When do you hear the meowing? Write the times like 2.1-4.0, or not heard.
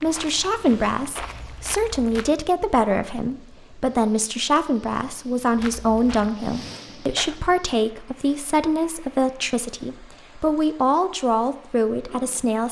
not heard.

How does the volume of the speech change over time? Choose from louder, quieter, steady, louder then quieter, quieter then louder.
steady.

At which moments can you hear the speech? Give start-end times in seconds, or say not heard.
0.0-12.6.